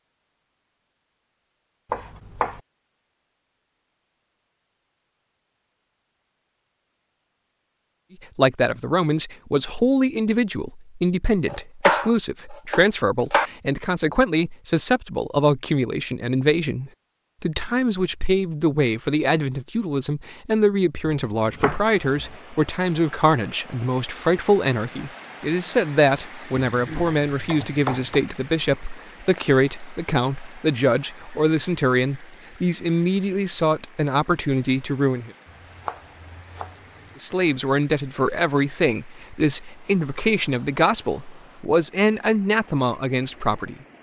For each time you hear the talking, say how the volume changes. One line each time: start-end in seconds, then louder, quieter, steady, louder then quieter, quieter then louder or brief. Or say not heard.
8.3-35.3 steady
37.1-43.8 steady.